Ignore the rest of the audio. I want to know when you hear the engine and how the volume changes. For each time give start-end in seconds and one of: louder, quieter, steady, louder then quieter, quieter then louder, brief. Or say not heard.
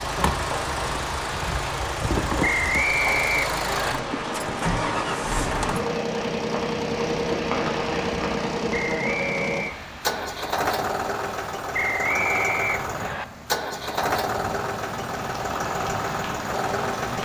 0.0-17.2 steady.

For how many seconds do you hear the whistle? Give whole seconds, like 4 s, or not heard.
4 s.